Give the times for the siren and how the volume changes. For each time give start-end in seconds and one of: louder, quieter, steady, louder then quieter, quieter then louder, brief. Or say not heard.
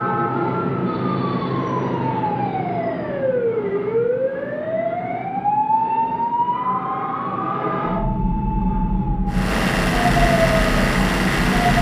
0.0-11.7 steady.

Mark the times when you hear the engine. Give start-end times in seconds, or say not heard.
9.2-11.7.